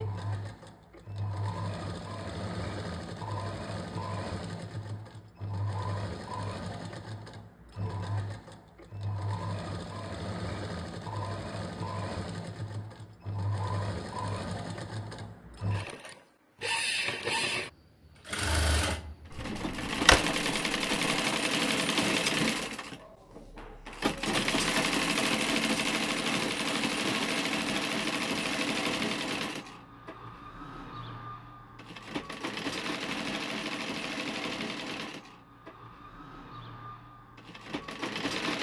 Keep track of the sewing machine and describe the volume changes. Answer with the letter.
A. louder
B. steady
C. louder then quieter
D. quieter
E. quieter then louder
C.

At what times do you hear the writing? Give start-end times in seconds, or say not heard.
not heard.